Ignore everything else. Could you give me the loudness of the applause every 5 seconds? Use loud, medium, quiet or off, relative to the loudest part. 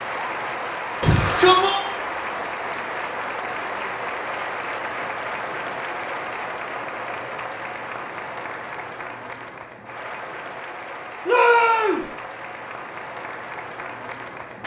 loud, loud, medium.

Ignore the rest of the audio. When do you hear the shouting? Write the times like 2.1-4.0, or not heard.
1.0-1.9, 11.2-12.1.